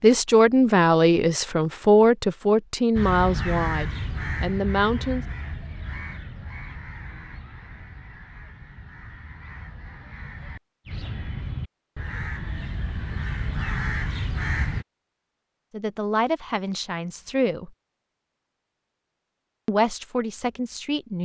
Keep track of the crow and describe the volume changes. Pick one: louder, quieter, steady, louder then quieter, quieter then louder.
quieter then louder.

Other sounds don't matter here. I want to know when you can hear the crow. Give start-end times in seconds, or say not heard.
3.0-14.8.